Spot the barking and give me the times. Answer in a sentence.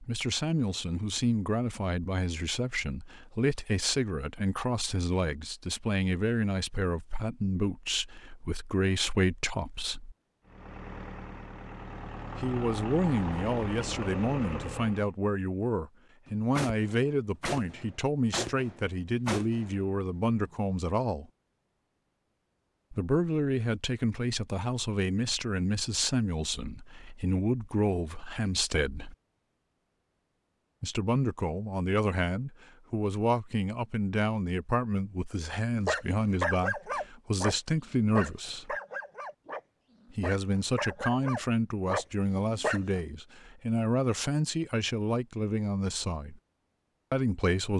You can hear the barking from 35.8 to 43.0 s.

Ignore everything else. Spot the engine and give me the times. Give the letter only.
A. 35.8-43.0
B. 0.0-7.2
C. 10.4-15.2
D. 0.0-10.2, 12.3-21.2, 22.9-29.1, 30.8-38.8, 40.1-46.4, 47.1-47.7
C.